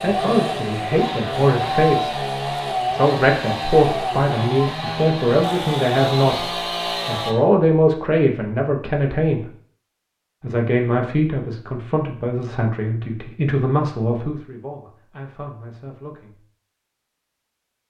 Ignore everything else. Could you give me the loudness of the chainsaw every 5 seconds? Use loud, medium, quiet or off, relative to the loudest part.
loud, loud, off, off.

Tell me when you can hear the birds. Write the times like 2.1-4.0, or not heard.
not heard.